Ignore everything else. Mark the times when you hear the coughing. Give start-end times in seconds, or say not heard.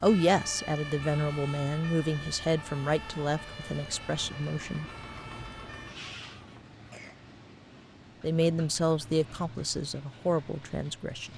6.2-7.3.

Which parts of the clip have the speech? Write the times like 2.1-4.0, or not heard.
0.0-4.8, 8.2-11.3.